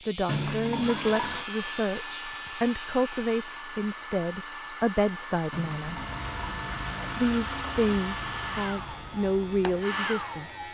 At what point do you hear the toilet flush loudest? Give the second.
1 s.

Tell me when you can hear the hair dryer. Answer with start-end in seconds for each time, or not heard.
0.0-10.6.